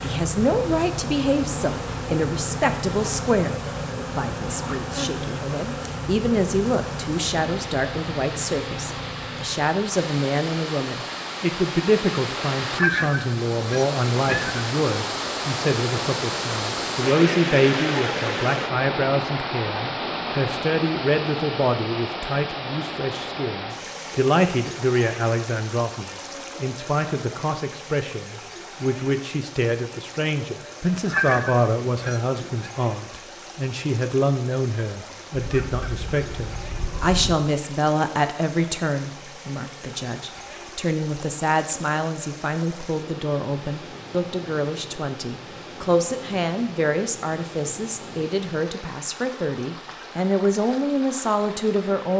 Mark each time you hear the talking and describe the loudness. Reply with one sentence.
You can hear the talking from 0.0 to 52.1 s, at a steady volume.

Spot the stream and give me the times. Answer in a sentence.
You can hear the stream from 0.2 to 52.1 s.